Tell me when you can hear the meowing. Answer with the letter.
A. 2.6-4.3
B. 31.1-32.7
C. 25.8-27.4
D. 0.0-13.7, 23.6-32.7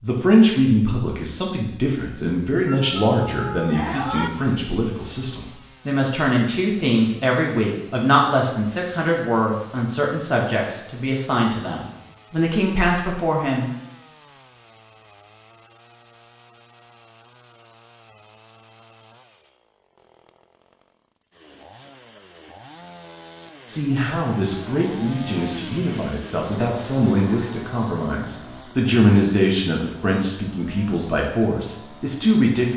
A.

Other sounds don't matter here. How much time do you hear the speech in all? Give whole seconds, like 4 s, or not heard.
23 s.